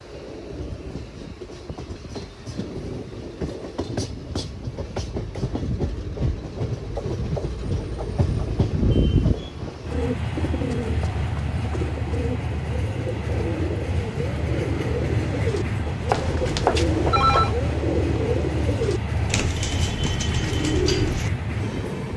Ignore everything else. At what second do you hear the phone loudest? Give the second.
17 s.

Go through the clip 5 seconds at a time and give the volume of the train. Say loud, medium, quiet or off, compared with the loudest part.
medium, loud, loud, loud, loud.